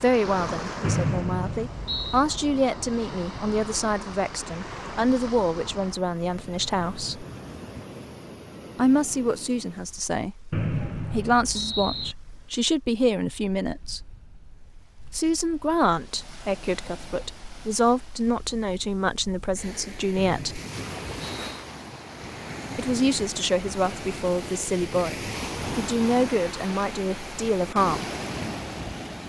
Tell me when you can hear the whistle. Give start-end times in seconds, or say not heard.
0.8-2.2, 10.5-12.2, 20.1-21.6.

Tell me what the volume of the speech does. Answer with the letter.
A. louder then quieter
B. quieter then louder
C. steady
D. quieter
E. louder
C.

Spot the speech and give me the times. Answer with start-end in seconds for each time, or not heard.
0.0-7.2, 8.8-14.1, 15.1-20.6, 22.8-28.1.